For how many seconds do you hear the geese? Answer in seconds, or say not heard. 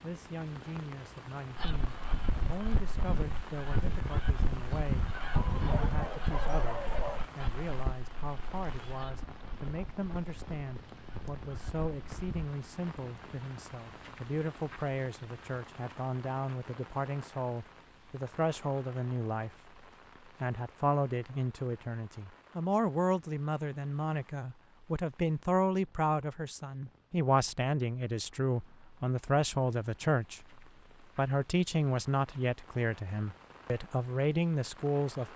11 s.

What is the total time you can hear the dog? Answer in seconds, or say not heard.
2 s.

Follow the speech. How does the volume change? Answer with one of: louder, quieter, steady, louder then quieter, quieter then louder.
louder.